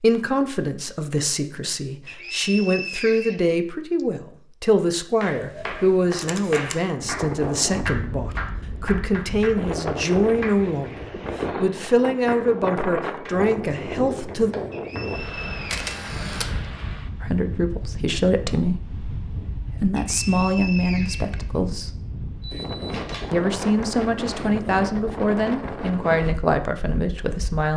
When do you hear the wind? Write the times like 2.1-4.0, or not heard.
7.0-27.4.